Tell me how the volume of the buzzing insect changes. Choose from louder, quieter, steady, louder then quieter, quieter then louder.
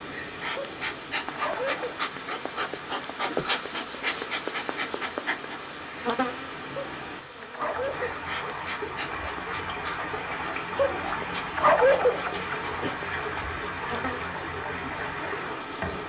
quieter.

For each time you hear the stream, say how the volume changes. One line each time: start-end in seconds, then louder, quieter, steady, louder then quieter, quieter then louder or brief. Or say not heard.
0.0-16.0 louder.